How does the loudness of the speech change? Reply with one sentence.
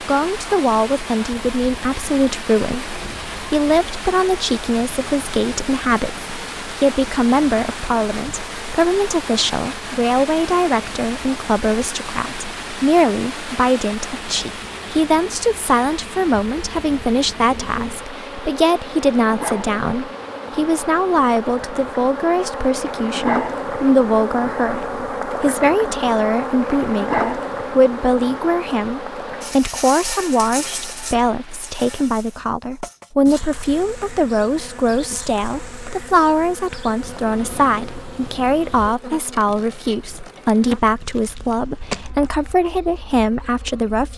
The loudness of the speech stays about the same.